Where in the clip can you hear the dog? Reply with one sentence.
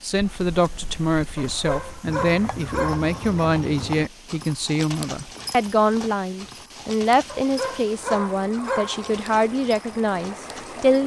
The dog can be heard from 1.4 to 3.1 s and from 7.2 to 9.1 s.